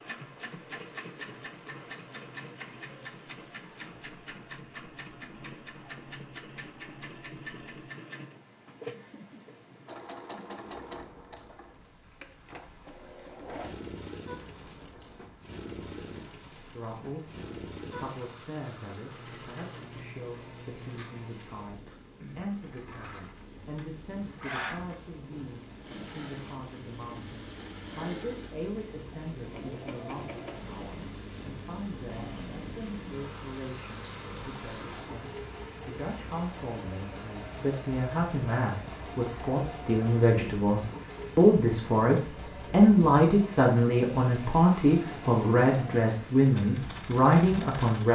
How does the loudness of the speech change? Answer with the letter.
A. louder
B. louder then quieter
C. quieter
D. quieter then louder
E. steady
A.